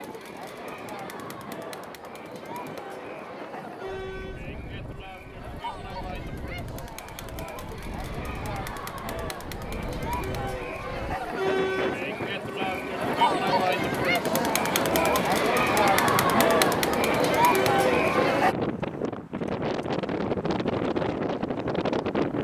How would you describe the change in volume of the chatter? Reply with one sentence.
The loudness of the chatter goes up.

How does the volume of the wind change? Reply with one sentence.
The volume of the wind goes up.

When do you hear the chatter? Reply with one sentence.
The chatter can be heard from 0.0 to 18.6 s.